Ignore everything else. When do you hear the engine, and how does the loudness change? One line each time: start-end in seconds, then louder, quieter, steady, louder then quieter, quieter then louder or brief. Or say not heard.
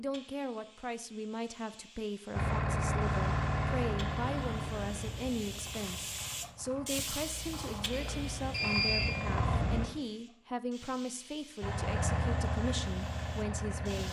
2.3-9.8 quieter then louder
11.6-14.0 brief.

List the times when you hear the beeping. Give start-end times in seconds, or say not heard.
7.9-9.1.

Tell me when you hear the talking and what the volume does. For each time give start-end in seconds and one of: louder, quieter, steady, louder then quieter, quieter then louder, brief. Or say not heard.
0.0-14.0 steady.